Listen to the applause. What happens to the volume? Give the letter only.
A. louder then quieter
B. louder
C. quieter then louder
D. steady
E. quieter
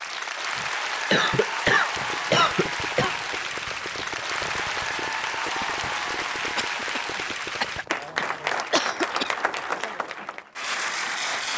D.